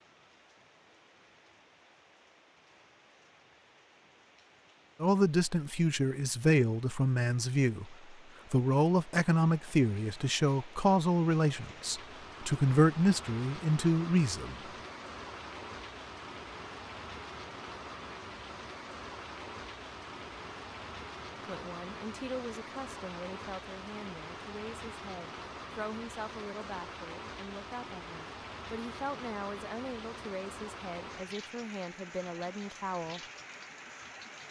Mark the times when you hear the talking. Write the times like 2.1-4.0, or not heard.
5.0-14.6, 21.4-33.2.